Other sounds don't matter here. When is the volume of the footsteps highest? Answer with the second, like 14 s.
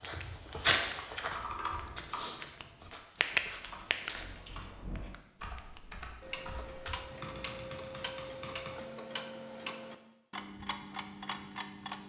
1 s.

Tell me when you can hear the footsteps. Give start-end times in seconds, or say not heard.
0.0-4.2.